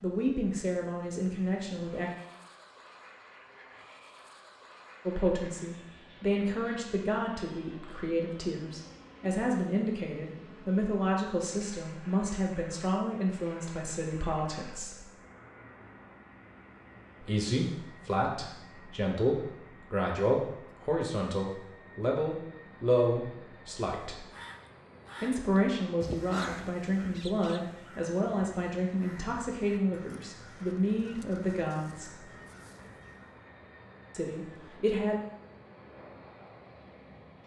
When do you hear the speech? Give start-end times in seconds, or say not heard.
0.0-2.1, 5.0-15.1, 17.2-24.2, 25.2-32.2, 34.1-35.2.